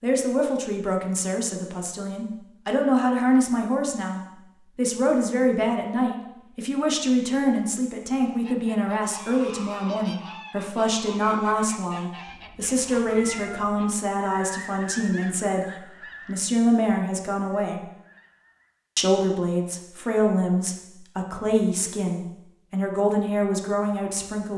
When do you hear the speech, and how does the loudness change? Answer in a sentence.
You can hear the speech from 0.0 to 17.8 s, at a steady volume; and from 18.9 to 24.5 s, at a steady volume.